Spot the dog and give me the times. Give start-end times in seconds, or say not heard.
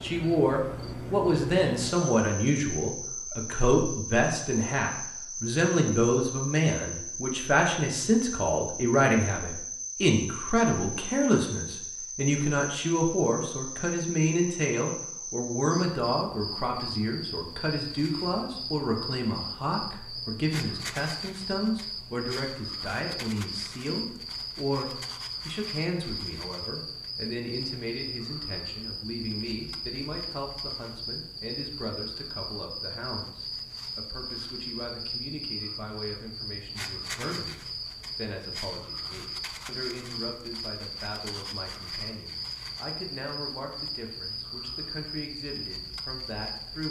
not heard.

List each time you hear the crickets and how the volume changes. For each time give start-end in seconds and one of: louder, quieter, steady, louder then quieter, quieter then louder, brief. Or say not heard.
0.0-46.8 steady.